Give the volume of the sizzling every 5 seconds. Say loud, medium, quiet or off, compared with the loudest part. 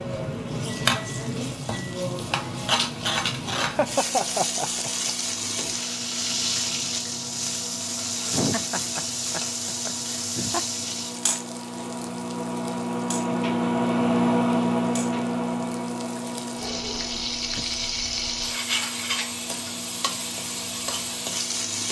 loud, loud, medium, loud, loud.